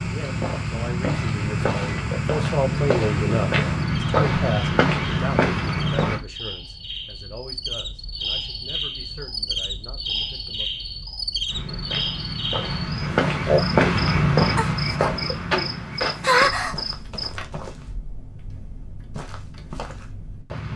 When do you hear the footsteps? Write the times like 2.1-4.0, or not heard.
0.0-6.2, 11.4-20.7.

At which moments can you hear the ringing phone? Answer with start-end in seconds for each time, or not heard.
not heard.